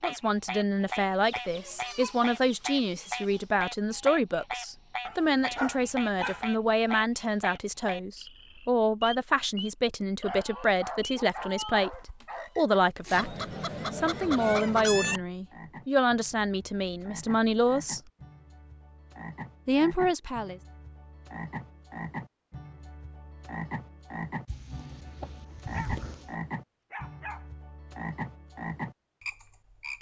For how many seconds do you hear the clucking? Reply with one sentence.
You can hear the clucking for 6 seconds altogether.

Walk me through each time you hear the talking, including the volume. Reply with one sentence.
The talking can be heard from 0.0 to 18.0 s, at a steady volume; and briefly from 19.6 to 20.6 s.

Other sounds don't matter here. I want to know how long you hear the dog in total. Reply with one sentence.
You can hear the dog for 6 seconds altogether.